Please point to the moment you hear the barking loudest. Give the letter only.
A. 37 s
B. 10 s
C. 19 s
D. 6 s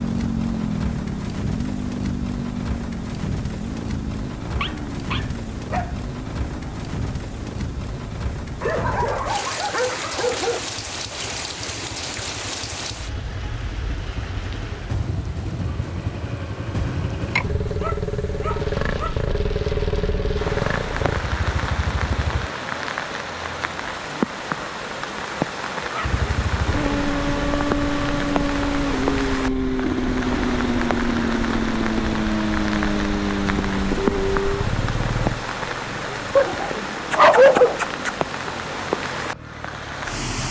A.